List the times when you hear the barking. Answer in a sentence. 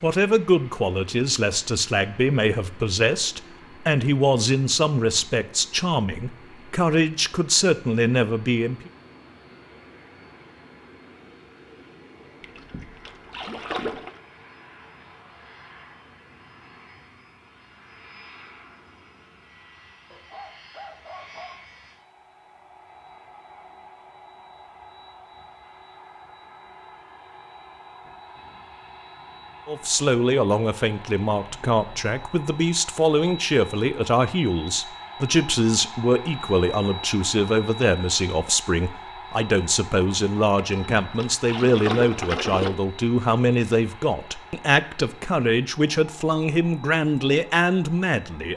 The barking can be heard from 20.1 to 21.6 s.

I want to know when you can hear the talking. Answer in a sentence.
You can hear the talking from 0.0 to 8.9 s and from 29.6 to 48.5 s.